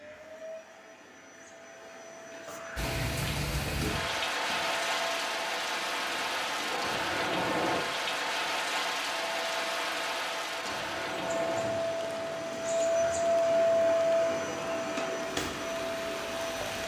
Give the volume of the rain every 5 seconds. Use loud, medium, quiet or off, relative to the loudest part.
loud, loud, medium, medium.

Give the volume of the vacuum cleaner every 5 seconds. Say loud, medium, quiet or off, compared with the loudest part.
quiet, quiet, loud, medium.